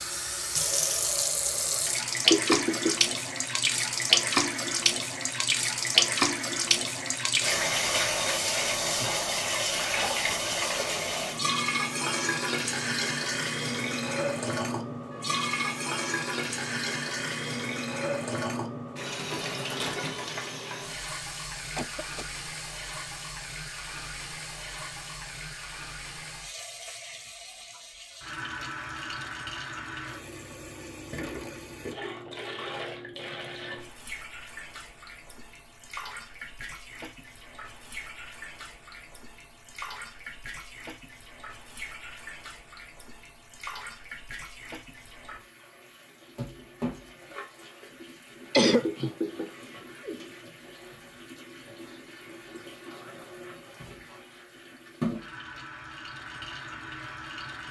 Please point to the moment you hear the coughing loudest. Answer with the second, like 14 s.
49 s.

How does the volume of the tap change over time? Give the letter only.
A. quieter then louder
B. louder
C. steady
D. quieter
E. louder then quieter
D.